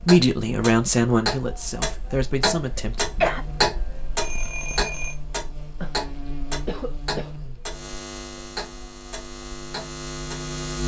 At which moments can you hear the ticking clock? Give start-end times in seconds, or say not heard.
0.0-10.6.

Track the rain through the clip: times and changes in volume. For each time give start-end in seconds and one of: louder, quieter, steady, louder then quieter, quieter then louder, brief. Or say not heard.
not heard.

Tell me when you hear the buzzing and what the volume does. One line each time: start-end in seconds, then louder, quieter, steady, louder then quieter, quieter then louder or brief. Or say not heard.
3.2-10.8 louder.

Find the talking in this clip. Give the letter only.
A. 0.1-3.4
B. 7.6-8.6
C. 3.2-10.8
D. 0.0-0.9
A.